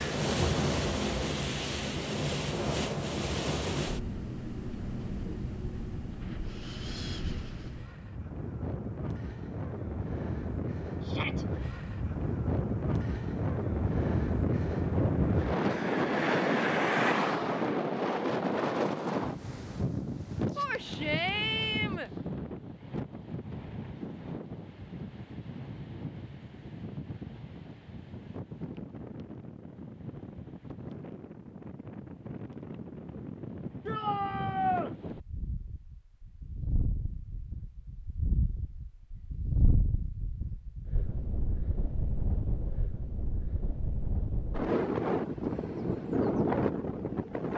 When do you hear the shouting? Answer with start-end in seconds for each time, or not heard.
11.0-11.4, 20.6-22.1, 33.9-34.9.